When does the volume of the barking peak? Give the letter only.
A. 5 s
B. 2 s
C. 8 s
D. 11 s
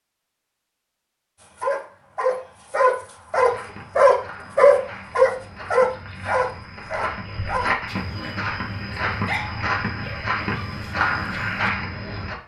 A.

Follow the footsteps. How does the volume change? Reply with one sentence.
The volume of the footsteps goes up.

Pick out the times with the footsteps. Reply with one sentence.
You can hear the footsteps from 3.4 to 12.3 s.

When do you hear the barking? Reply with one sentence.
You can hear the barking from 1.4 to 11.7 s.